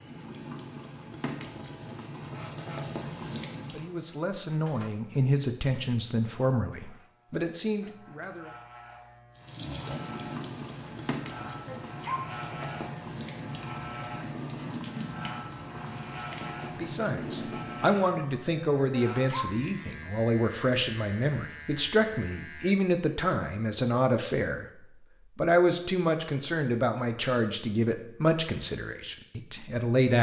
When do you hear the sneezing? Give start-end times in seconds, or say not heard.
11.7-12.2, 18.9-19.5.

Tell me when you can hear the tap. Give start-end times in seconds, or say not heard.
0.0-4.0, 9.3-18.0.